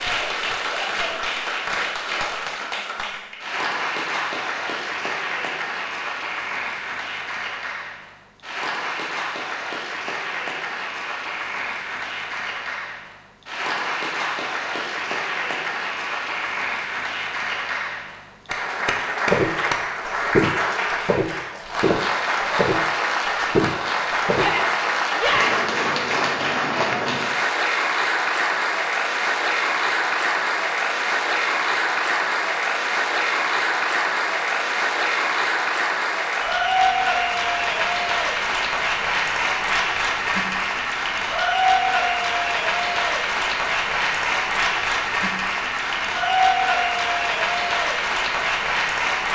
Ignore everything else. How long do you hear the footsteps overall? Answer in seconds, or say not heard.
5 s.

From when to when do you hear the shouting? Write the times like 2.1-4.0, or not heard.
24.4-25.6.